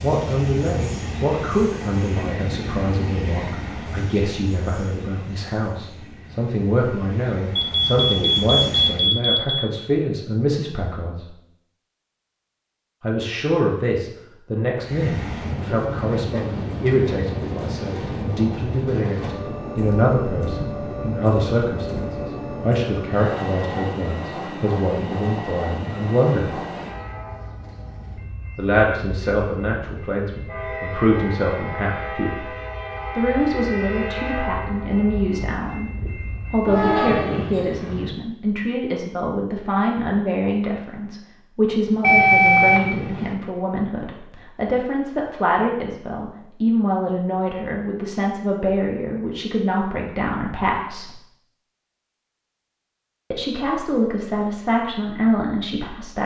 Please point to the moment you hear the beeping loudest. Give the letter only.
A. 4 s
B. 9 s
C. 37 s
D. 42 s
D.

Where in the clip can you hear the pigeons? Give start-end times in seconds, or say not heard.
not heard.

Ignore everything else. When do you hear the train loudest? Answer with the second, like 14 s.
37 s.